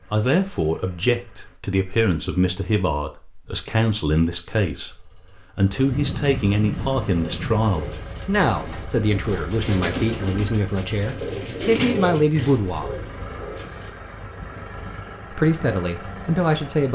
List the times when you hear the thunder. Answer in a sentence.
The thunder can be heard from 5.9 to 7.9 s.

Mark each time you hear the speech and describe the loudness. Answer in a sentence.
The speech can be heard from 0.1 to 12.9 s, at a steady volume; and briefly from 15.3 to 16.9 s.